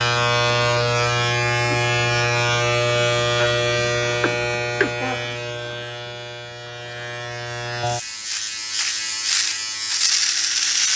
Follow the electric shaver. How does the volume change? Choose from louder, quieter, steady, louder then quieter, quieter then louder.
quieter then louder.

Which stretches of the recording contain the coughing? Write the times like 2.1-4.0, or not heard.
4.2-5.0.